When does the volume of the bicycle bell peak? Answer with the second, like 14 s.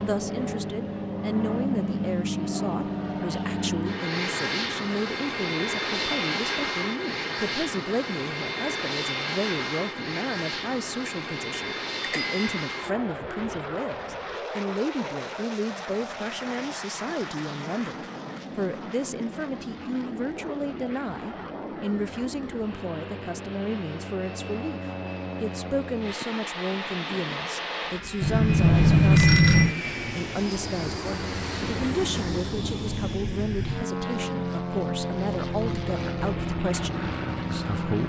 29 s.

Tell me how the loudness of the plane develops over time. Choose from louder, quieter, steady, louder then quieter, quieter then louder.
quieter then louder.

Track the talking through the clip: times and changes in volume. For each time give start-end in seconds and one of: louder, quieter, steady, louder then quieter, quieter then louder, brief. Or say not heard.
0.0-38.0 steady.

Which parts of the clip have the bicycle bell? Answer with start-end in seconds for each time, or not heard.
12.0-12.4, 28.2-29.8.